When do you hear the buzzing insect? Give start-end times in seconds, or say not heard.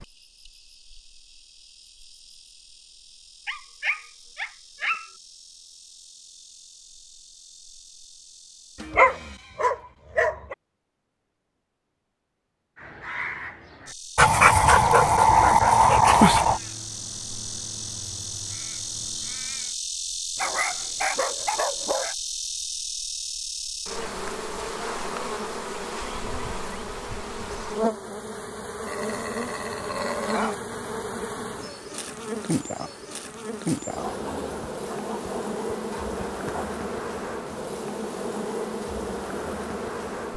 0.0-8.8, 13.8-40.3.